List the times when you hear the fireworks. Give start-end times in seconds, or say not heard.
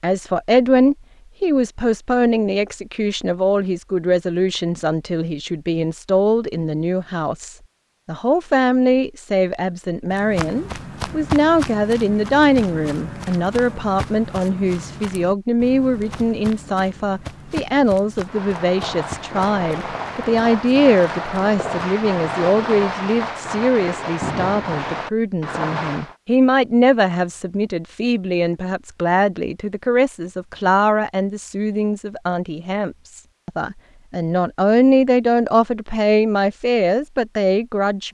18.2-26.1.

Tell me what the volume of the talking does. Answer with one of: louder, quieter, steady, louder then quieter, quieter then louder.
steady.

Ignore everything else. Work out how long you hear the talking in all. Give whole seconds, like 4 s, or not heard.
38 s.